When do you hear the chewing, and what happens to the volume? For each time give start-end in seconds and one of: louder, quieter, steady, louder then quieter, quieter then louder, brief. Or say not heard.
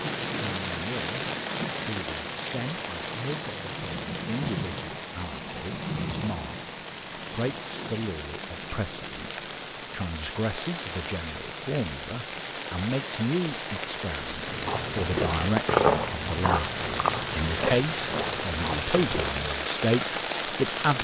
14.4-19.6 louder then quieter.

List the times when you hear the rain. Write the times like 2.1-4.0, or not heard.
0.0-20.9.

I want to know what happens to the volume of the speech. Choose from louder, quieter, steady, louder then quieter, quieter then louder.
louder.